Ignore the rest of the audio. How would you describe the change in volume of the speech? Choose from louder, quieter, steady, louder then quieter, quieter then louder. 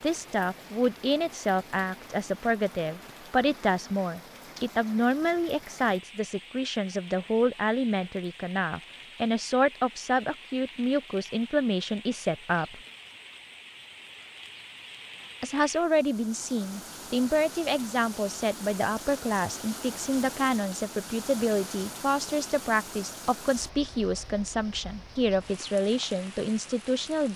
steady.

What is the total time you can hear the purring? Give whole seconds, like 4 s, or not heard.
not heard.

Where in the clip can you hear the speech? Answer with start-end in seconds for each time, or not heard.
0.0-12.8, 15.4-27.3.